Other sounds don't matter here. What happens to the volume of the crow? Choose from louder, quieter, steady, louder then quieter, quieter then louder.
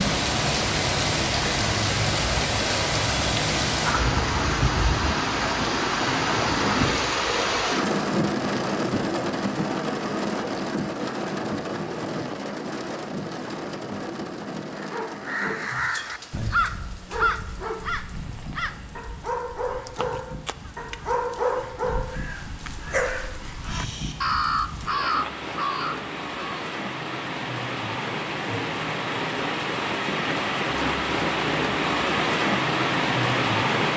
quieter then louder.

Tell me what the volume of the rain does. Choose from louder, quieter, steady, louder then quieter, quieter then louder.
quieter then louder.